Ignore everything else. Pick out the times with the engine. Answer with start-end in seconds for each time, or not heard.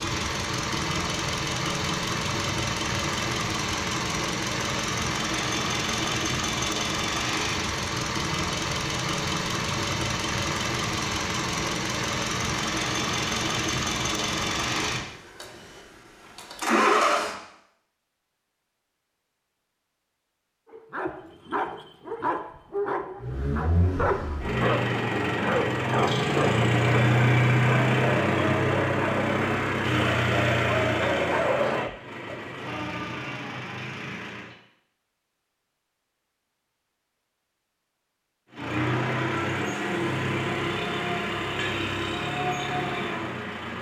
0.0-17.4, 23.2-34.5, 38.5-43.7.